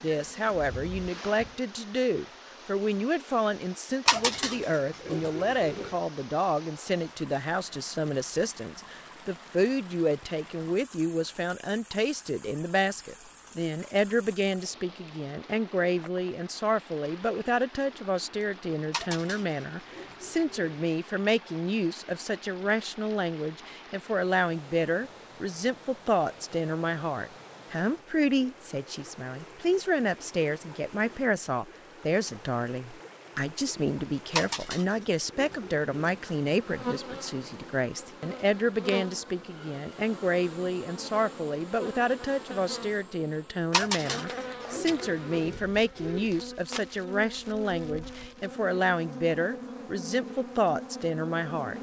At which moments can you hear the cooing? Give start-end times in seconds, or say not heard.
4.0-6.0, 18.9-20.8, 34.3-35.9, 43.7-46.2.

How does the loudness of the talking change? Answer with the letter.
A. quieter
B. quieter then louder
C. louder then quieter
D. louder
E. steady
E.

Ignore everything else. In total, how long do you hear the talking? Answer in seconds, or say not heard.
52 s.